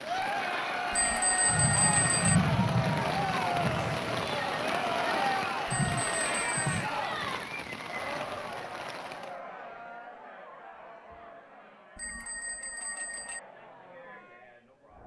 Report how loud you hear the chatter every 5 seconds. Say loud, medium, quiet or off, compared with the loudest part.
loud, loud, quiet.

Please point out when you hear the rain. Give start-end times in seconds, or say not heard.
0.0-9.3.